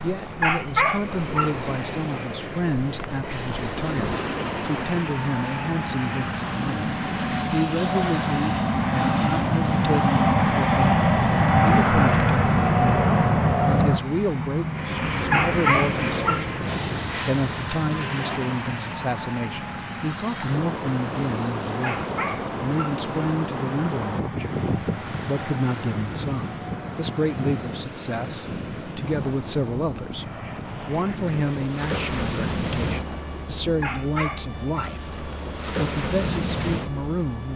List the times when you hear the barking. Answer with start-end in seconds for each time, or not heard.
0.3-1.6, 15.2-16.5, 21.8-23.0, 33.8-35.0.